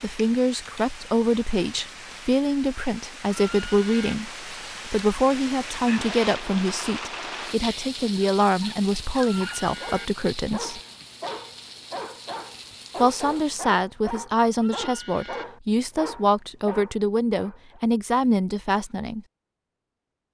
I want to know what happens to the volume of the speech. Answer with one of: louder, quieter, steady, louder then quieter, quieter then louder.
steady.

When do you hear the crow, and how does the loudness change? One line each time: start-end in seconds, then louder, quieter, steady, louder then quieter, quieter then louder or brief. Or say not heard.
not heard.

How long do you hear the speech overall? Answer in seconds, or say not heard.
17 s.